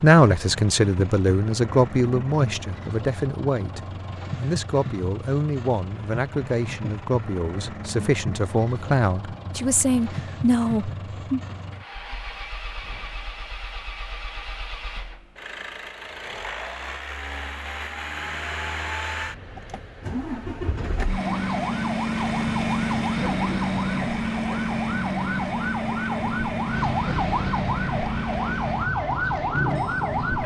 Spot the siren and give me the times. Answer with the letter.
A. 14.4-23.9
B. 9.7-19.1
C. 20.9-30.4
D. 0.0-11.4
C.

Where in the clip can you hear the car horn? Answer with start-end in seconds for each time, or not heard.
not heard.